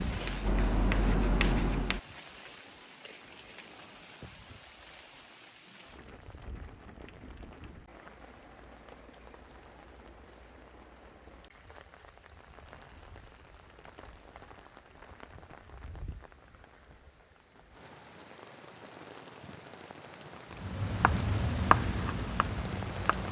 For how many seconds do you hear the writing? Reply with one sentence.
You can hear the writing for 5 seconds altogether.